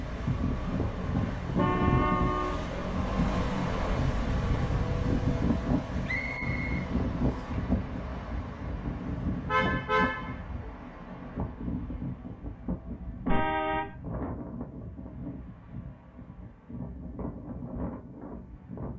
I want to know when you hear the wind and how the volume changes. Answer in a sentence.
You can hear the wind from 0.0 to 18.9 s, getting quieter.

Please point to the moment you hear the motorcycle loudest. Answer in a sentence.
The volume of the motorcycle peaks at 4 seconds.